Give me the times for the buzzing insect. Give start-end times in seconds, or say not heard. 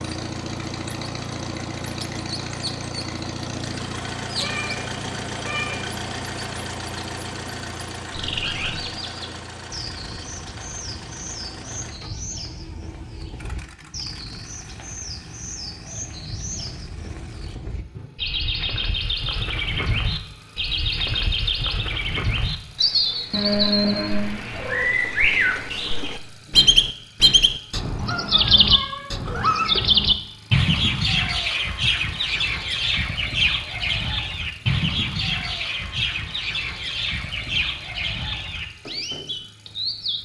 not heard.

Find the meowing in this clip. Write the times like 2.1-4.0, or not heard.
4.3-6.0, 23.3-24.9, 28.1-29.9.